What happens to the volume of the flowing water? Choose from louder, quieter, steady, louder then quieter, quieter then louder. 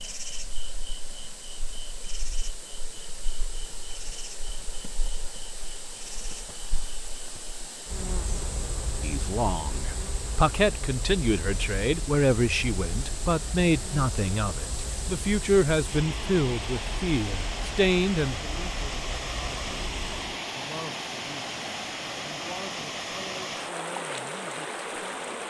louder.